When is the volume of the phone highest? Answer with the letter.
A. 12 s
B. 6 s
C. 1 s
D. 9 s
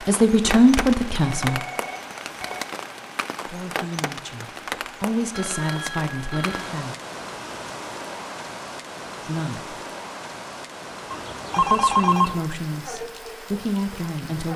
A.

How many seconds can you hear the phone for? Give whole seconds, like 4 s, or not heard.
4 s.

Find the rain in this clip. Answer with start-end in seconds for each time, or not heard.
0.0-14.5.